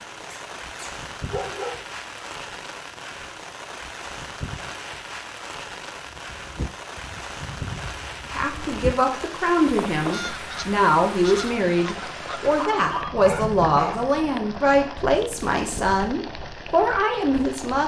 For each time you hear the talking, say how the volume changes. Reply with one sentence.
The talking can be heard from 8.3 to 17.8 s, at a steady volume.